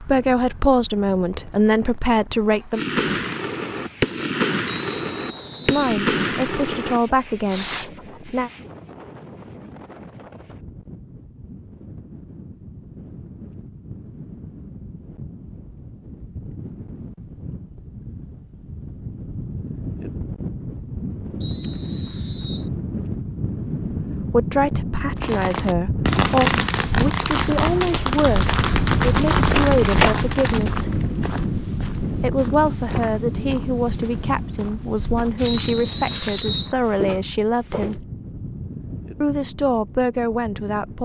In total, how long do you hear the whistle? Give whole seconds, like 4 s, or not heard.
4 s.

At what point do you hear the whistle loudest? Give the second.
36 s.